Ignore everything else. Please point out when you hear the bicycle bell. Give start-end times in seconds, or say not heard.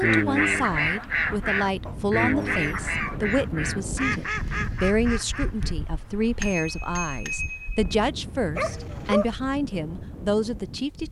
6.4-8.0.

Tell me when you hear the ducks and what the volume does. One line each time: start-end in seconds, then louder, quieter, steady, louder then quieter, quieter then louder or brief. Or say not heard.
0.0-5.8 quieter.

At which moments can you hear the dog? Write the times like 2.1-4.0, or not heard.
1.9-3.4, 8.6-9.3.